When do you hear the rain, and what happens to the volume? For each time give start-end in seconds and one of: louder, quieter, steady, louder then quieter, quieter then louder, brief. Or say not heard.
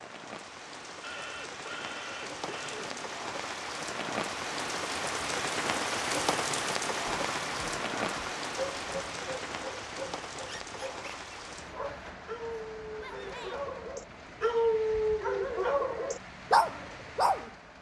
0.0-17.7 louder then quieter.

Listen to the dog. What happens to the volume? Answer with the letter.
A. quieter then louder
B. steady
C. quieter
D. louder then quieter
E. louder
E.